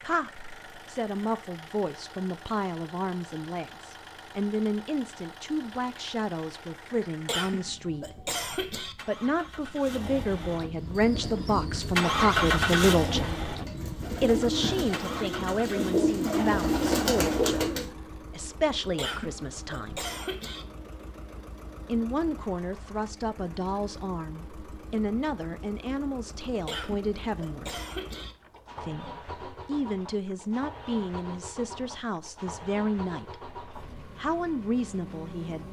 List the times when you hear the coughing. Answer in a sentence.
You can hear the coughing from 7.2 to 8.9 s, from 18.9 to 20.6 s and from 26.6 to 28.4 s.